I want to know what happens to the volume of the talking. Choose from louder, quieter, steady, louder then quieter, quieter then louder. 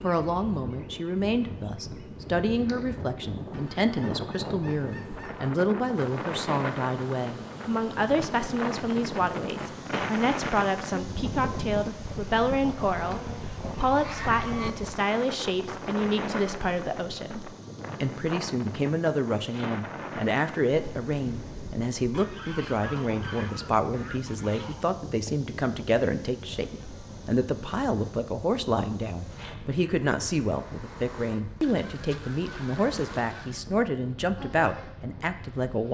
steady.